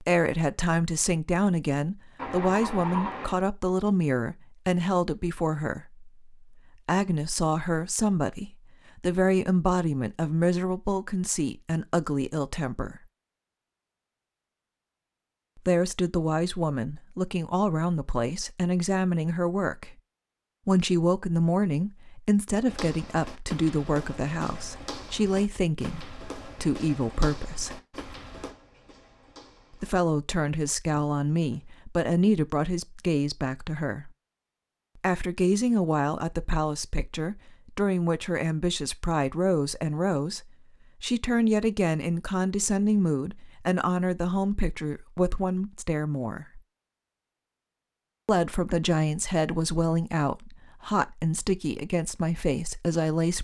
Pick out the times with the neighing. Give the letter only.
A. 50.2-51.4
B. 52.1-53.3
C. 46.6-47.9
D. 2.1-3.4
D.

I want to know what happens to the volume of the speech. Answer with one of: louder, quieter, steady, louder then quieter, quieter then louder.
steady.